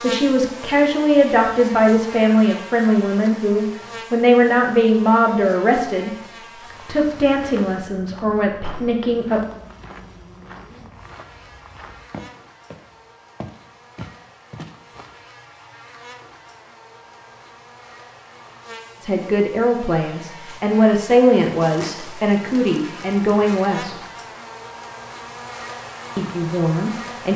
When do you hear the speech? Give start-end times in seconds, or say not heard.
0.0-6.1, 6.8-9.4, 19.0-24.0, 26.1-27.3.